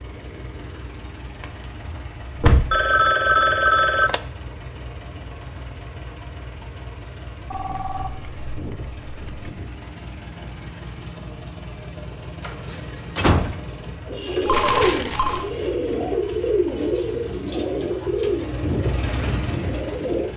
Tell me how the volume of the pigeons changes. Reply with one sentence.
The loudness of the pigeons goes down.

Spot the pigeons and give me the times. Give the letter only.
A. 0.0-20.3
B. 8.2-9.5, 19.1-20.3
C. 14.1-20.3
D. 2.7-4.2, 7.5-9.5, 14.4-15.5
C.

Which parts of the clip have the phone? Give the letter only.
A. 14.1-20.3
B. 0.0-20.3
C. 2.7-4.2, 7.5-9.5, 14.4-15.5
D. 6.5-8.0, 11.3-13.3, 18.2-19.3
C.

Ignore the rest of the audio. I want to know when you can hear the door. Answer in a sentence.
You can hear the door from 1.4 to 2.8 s and from 12.4 to 13.6 s.